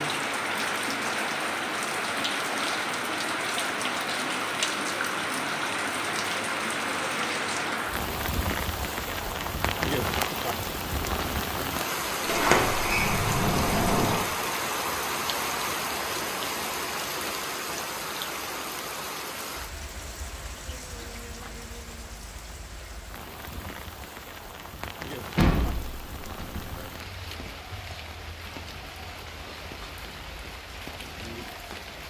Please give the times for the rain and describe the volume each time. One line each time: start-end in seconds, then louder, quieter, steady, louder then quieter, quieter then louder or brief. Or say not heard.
0.0-32.0 quieter.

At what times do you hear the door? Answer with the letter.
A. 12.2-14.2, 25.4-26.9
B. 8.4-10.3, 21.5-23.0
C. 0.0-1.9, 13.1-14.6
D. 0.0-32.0
A.